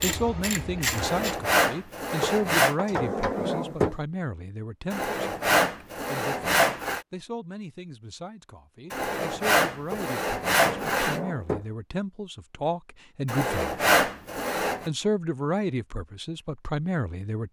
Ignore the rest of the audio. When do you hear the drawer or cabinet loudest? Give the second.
4 s.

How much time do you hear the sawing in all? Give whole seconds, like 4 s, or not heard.
8 s.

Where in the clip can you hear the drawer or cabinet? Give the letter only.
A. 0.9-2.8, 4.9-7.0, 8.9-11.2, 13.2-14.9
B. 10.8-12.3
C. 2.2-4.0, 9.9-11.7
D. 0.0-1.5
C.